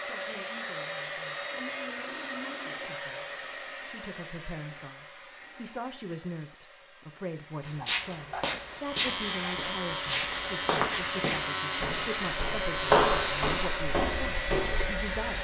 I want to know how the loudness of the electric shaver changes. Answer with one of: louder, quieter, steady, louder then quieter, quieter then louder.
steady.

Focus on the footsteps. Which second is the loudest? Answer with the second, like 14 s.
13 s.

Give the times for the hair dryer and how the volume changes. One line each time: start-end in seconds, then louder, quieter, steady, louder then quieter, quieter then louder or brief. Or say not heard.
0.0-15.3 quieter then louder.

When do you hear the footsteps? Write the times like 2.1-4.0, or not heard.
7.6-14.9.